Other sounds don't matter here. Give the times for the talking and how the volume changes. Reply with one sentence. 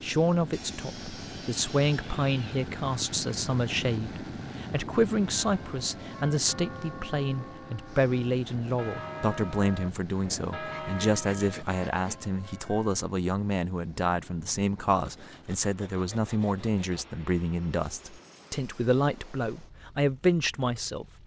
You can hear the talking from 0.0 to 21.2 s, at a steady volume.